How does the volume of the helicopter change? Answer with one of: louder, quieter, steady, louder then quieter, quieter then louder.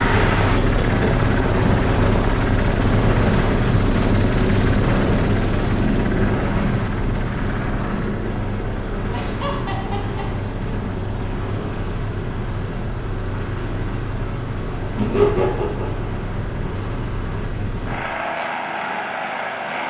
quieter.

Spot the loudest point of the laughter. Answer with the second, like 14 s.
15 s.